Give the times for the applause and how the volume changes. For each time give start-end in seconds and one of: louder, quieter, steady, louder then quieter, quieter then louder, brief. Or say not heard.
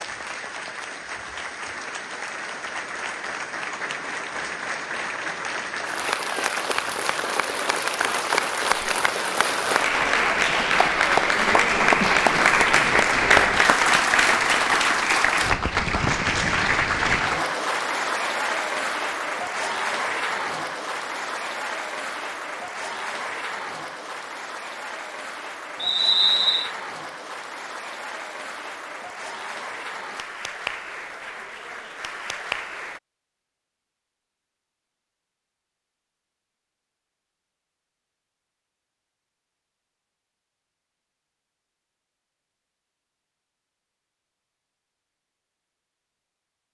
0.0-33.0 louder then quieter.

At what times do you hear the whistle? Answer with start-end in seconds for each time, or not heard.
25.8-26.7.